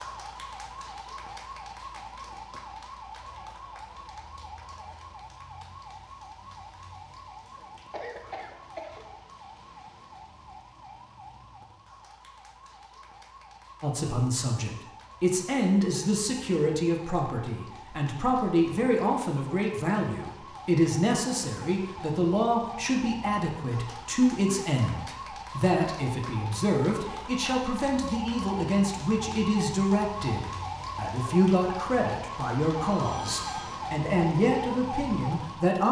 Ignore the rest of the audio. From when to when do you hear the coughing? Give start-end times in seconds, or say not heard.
7.9-9.1.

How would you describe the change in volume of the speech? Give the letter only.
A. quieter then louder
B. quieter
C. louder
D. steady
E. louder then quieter
D.